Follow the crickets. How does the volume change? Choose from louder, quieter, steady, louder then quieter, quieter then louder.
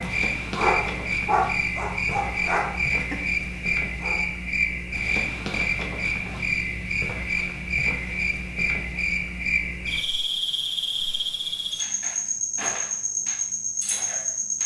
steady.